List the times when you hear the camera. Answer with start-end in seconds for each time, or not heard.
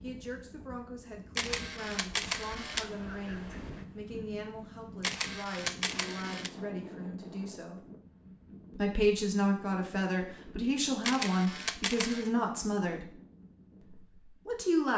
1.4-2.9, 5.0-6.5, 11.0-12.3.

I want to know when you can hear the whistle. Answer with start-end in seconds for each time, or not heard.
not heard.